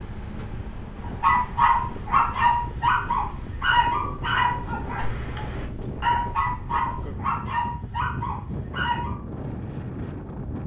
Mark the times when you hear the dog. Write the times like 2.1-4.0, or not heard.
1.2-9.2.